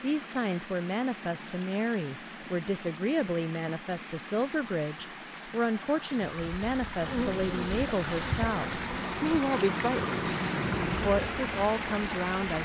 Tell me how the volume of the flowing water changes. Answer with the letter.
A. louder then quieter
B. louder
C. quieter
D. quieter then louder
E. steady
B.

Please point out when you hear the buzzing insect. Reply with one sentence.
You can hear the buzzing insect from 7.0 to 12.6 s.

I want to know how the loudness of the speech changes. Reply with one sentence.
The volume of the speech stays about the same.